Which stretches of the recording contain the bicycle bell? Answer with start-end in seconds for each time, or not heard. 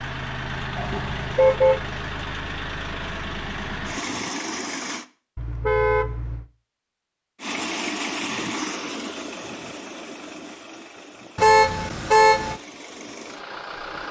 not heard.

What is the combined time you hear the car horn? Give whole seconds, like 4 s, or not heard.
3 s.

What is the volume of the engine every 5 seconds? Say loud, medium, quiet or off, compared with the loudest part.
loud, loud, medium.